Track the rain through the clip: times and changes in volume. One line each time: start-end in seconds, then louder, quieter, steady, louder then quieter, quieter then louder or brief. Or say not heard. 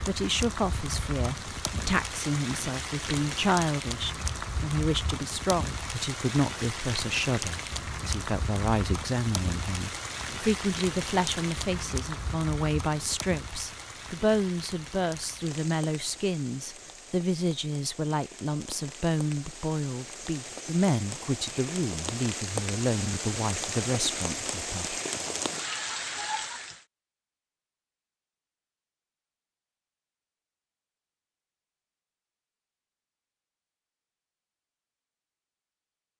0.0-26.8 quieter then louder.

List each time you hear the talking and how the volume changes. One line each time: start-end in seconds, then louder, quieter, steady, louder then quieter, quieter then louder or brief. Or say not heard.
0.1-25.3 steady.